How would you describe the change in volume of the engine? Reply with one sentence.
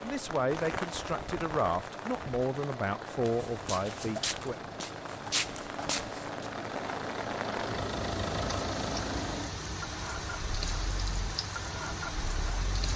The volume of the engine goes up, then down.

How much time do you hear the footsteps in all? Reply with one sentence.
The footsteps can be heard for 3 seconds in total.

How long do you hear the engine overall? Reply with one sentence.
You can hear the engine for 13 seconds altogether.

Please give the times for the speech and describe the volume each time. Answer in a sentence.
You can hear the speech from 0.0 to 4.5 s, at a steady volume.